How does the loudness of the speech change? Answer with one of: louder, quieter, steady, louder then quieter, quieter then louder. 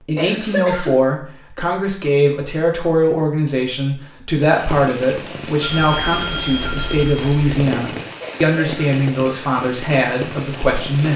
steady.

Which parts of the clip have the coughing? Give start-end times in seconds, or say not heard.
0.1-1.0, 8.2-9.0.